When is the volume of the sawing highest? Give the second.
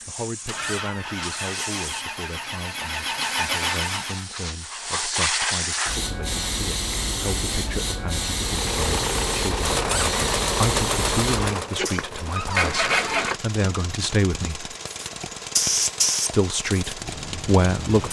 13 s.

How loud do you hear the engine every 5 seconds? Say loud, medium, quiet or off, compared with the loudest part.
loud, loud, loud, medium.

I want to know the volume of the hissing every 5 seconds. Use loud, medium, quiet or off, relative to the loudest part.
medium, loud, loud, loud.